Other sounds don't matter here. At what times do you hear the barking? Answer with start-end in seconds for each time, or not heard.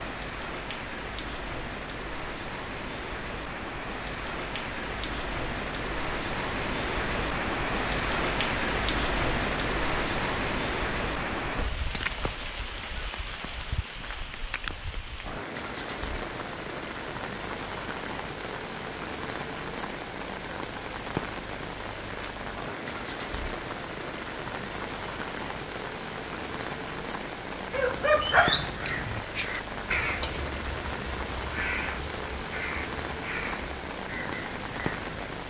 27.7-29.2.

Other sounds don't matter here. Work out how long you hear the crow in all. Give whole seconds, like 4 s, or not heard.
7 s.